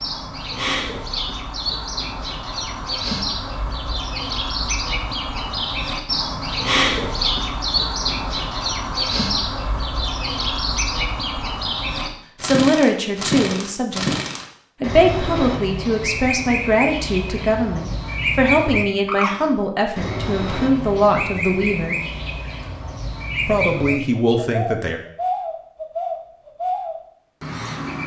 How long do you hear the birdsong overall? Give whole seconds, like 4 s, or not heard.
28 s.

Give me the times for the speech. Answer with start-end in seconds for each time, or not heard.
12.4-14.1, 14.8-21.9, 23.4-25.0.